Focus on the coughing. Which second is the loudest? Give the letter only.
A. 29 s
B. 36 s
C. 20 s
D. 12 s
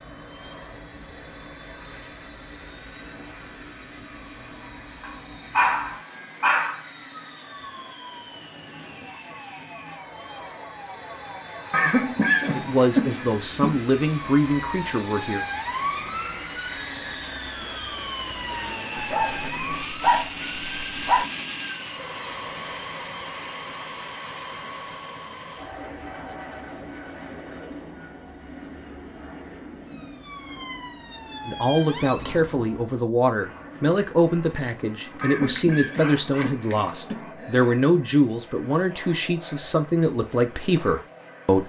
D.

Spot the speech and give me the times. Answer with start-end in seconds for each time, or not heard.
12.6-15.4, 31.4-41.6.